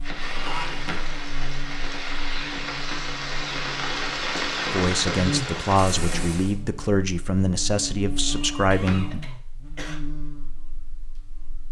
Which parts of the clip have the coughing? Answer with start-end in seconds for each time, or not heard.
0.3-0.8, 8.7-9.9.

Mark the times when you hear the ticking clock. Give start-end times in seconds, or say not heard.
not heard.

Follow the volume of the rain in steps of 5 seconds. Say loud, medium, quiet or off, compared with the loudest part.
loud, loud, off.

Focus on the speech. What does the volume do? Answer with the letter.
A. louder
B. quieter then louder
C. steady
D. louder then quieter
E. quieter
C.